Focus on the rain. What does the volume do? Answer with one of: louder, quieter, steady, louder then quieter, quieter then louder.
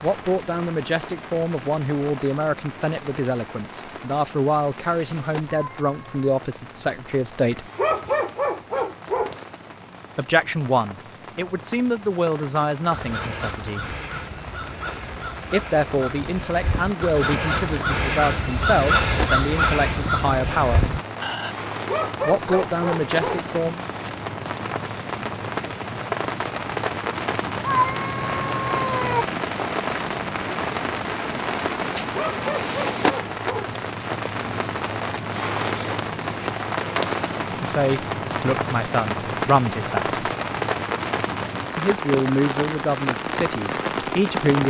louder.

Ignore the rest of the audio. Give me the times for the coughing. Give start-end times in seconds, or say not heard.
not heard.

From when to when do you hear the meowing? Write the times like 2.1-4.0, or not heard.
5.5-6.3, 27.6-29.2.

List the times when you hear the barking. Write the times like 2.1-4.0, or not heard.
7.5-9.4, 21.7-23.5, 32.1-33.8.